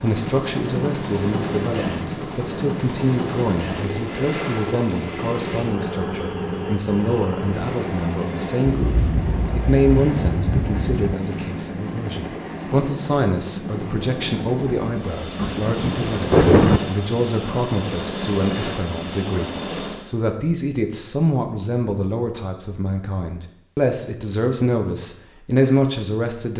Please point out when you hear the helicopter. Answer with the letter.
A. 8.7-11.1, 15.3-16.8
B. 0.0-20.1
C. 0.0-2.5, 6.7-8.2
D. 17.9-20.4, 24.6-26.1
B.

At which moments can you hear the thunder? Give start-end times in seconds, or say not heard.
8.7-11.1, 15.3-16.8.